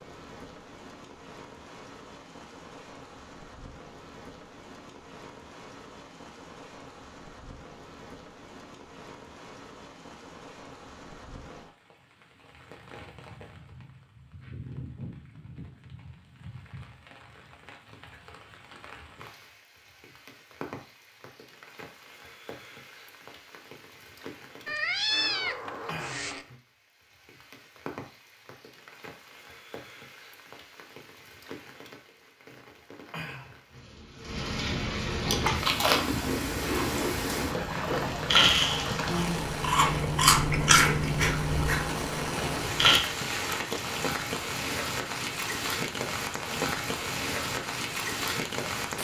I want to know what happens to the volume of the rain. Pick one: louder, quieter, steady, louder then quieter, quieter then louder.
louder.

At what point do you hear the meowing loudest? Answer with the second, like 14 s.
25 s.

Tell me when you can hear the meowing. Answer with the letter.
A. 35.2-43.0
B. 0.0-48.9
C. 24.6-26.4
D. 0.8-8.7
C.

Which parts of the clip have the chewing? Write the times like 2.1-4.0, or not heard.
35.2-43.0.